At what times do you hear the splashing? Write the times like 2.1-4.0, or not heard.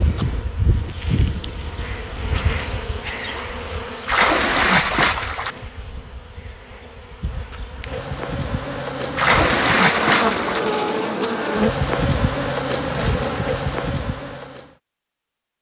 4.0-5.6, 9.2-10.7.